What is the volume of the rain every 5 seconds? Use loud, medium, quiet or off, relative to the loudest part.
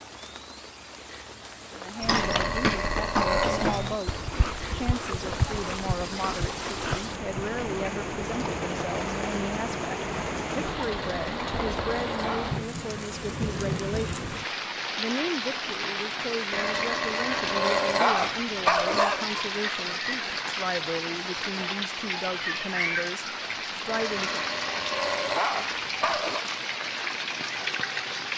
medium, loud, loud, loud, loud, loud.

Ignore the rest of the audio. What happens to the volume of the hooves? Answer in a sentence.
The volume of the hooves goes down.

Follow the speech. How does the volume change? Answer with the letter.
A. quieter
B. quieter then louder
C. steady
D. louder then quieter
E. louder
C.